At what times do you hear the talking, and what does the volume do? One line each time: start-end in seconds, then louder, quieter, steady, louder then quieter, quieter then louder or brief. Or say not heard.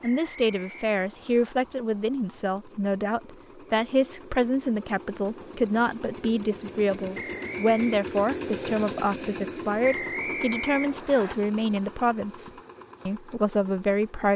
0.0-14.3 steady.